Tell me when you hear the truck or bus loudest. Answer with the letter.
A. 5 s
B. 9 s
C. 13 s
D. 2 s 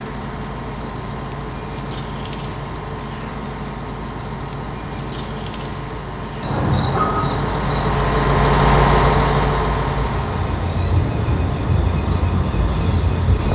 B.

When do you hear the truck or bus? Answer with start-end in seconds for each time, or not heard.
0.0-13.4.